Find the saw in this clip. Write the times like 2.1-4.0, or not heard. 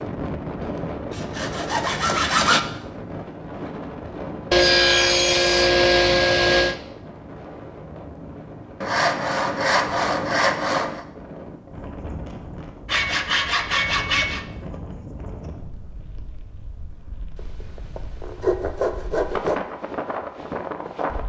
0.6-2.6, 4.5-6.8, 8.8-11.1, 12.8-14.4, 17.4-19.6.